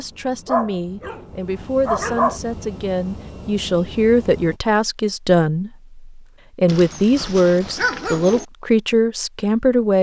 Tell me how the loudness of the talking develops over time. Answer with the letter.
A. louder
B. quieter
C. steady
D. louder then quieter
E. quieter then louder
A.